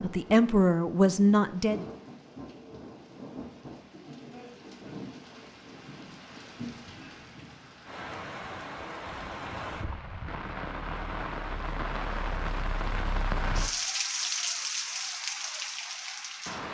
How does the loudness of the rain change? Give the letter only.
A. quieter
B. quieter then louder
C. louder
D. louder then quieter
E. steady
C.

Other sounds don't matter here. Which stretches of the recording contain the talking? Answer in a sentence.
You can hear the talking from 0.0 to 1.9 s.